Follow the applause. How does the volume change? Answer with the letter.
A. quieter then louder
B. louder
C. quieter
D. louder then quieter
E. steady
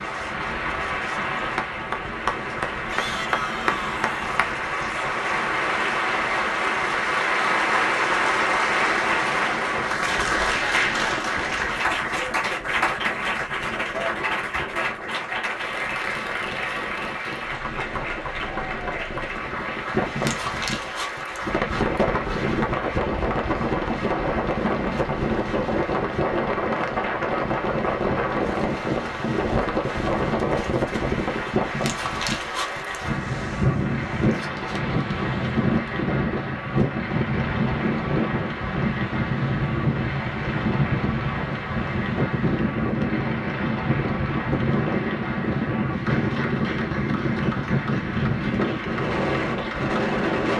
C.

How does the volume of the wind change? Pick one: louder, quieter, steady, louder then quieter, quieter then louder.
louder.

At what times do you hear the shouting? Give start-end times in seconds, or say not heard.
2.9-4.4.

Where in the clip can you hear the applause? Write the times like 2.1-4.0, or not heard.
0.0-50.5.